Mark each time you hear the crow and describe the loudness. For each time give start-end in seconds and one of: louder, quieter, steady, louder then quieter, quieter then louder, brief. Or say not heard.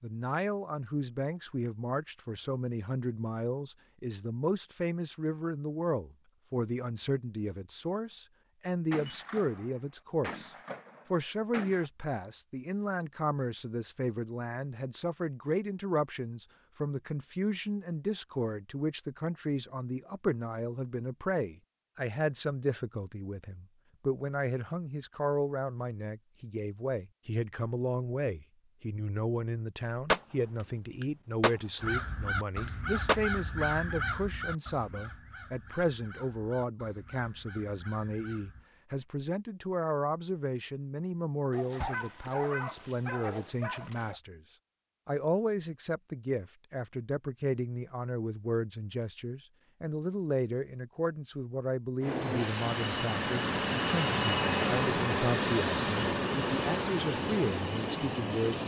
31.8-38.7 quieter.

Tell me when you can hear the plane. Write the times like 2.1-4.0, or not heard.
52.0-58.6.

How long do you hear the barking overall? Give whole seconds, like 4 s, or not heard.
3 s.